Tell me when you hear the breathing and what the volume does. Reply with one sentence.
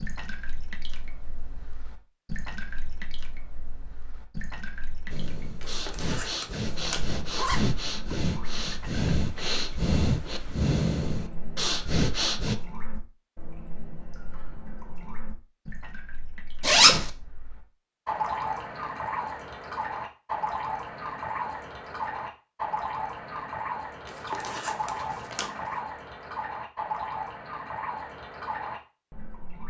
The breathing can be heard from 5.1 to 12.6 s, getting louder.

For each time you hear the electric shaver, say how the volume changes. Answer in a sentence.
The electric shaver can't be heard in this clip.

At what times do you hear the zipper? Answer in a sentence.
The zipper can be heard from 5.6 to 7.6 s, from 16.6 to 17.1 s and from 24.1 to 25.6 s.